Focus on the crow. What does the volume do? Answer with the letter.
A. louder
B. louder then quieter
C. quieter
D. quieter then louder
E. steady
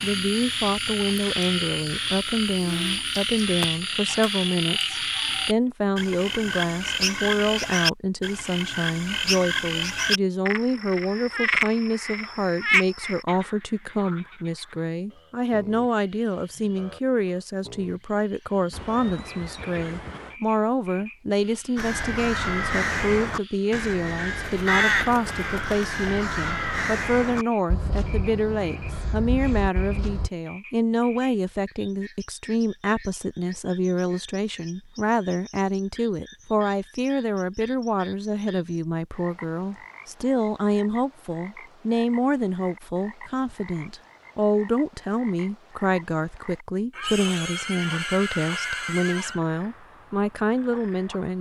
C.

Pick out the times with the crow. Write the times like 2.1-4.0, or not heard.
21.8-30.3.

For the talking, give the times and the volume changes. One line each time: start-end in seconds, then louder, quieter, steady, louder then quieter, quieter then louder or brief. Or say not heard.
0.0-51.3 steady.